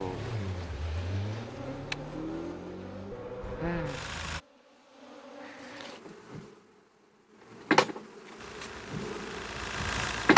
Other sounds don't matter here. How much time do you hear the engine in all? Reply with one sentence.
The engine can be heard for 6 seconds in total.